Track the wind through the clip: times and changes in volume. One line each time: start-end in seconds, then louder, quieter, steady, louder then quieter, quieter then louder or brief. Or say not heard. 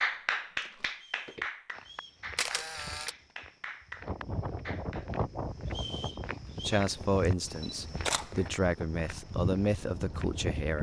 4.0-10.7 quieter.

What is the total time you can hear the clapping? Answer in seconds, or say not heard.
5 s.